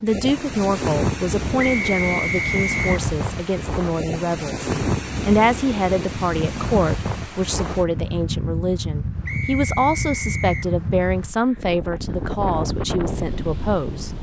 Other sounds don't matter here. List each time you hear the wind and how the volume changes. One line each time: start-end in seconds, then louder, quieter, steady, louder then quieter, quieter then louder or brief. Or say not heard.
0.0-14.1 steady.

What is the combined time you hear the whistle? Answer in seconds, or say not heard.
3 s.